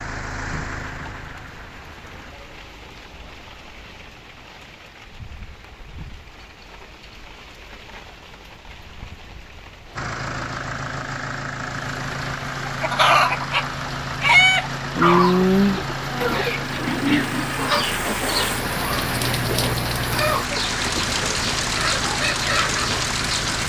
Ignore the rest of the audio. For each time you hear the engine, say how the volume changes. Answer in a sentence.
The engine can be heard briefly from 0.0 to 2.4 s; and from 9.9 to 23.6 s, at a steady volume.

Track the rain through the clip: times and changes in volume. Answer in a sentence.
The rain can be heard from 0.0 to 23.6 s, getting louder.